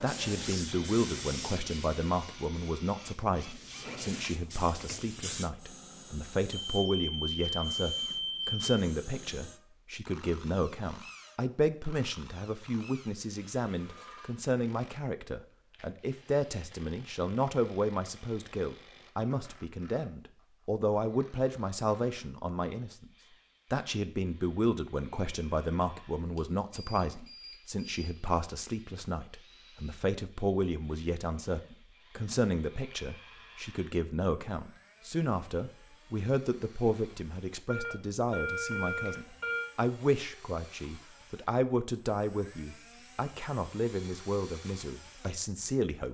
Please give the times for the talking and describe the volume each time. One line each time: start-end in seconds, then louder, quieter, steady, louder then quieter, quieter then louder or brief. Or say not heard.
0.0-23.1 steady
23.7-46.0 steady.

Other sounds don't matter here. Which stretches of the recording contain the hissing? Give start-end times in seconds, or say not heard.
0.0-5.5.